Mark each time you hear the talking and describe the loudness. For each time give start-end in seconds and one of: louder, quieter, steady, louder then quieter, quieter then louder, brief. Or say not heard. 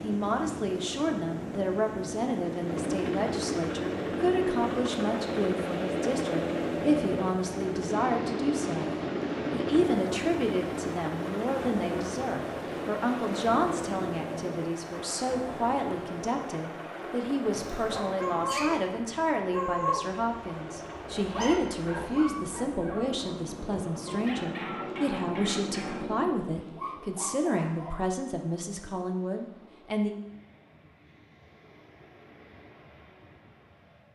0.0-30.1 steady.